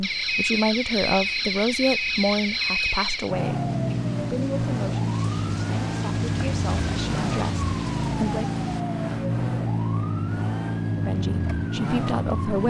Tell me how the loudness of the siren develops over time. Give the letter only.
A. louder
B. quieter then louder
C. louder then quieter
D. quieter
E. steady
E.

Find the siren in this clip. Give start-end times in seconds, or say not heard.
0.0-12.6.